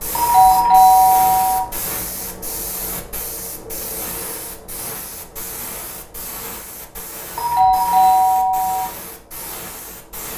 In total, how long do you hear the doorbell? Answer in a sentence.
The doorbell can be heard for 3 seconds in total.